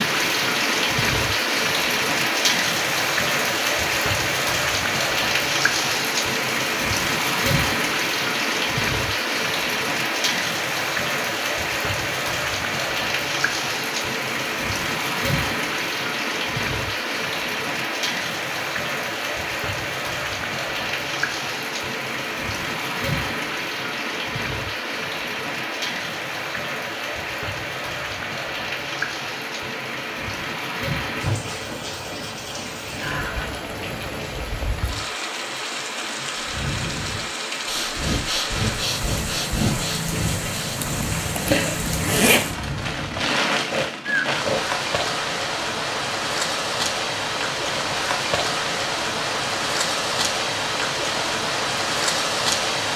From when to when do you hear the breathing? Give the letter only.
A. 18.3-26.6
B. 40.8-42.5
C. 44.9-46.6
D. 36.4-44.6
D.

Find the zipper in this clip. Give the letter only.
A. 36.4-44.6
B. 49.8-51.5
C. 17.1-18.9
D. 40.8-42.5
D.